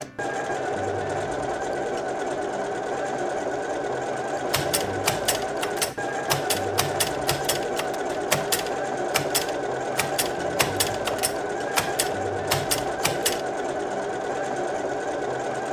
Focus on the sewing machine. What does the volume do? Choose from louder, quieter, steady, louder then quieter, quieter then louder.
steady.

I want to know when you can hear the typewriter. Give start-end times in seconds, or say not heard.
4.5-13.4.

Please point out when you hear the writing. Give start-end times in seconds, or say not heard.
not heard.